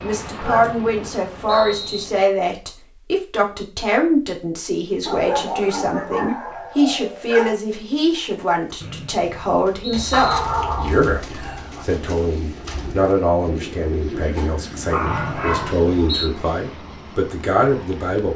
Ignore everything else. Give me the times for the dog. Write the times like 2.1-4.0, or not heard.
0.2-1.8, 5.0-7.5, 10.1-11.8, 14.3-15.8.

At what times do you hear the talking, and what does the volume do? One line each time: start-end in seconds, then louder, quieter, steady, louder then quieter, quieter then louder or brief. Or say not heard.
0.0-18.3 steady.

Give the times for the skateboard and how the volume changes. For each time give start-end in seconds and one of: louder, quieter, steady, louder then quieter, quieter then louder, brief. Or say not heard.
not heard.